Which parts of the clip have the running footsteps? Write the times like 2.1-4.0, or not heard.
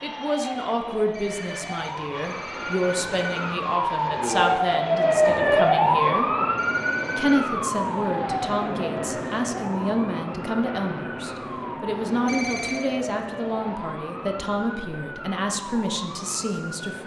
not heard.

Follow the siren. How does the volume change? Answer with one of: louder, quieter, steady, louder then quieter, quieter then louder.
louder then quieter.